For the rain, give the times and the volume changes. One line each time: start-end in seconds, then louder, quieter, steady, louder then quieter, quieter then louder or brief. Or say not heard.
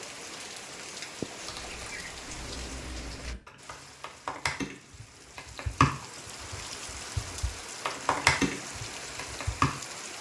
0.0-10.1 quieter then louder.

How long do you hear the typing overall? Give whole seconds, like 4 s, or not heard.
8 s.